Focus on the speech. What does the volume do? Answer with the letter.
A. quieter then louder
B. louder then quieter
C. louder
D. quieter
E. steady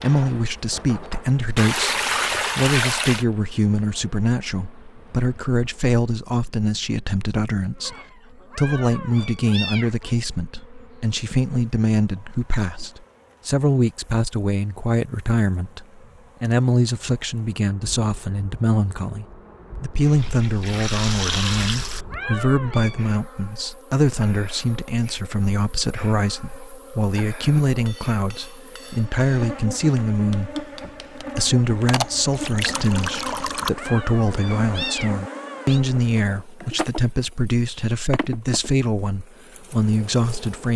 E.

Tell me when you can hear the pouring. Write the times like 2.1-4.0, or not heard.
1.6-3.2, 20.0-22.1, 31.9-33.7.